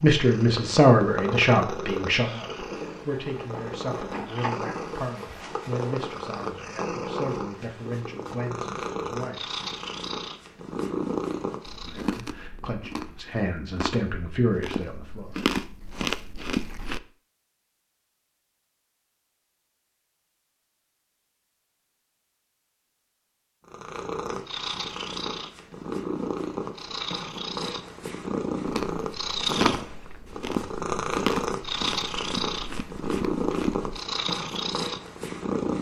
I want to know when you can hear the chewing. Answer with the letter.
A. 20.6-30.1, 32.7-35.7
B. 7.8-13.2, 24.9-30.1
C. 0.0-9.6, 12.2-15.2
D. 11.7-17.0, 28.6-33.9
D.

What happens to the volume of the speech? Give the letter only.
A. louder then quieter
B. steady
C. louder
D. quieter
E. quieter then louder
E.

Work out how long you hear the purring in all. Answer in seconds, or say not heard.
24 s.